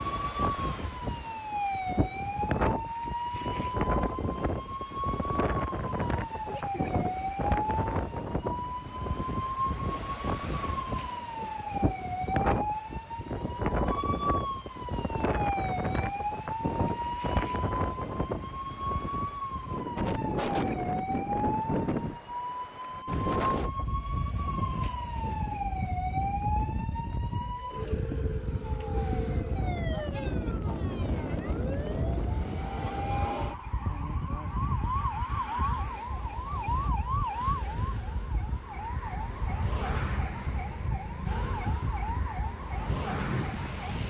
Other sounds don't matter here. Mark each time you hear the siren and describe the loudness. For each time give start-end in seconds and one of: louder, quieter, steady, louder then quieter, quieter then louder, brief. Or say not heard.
0.0-44.0 steady.